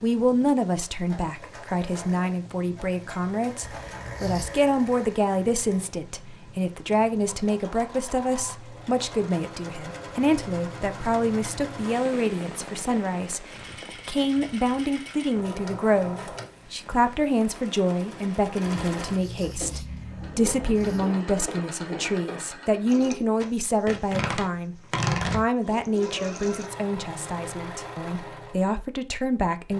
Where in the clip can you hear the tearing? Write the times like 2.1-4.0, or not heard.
23.4-25.4.